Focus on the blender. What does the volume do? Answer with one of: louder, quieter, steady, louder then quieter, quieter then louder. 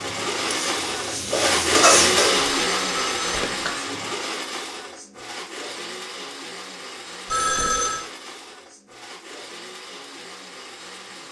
quieter.